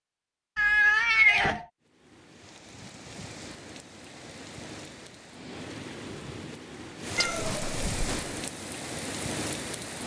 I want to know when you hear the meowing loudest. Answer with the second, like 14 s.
1 s.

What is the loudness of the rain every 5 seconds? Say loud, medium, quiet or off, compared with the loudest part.
medium, loud.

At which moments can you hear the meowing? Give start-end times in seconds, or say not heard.
0.6-1.6, 7.2-8.3.